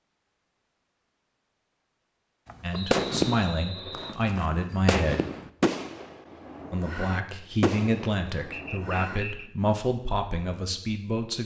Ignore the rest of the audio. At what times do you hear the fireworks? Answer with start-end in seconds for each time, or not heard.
2.5-9.2.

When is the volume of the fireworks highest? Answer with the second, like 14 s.
3 s.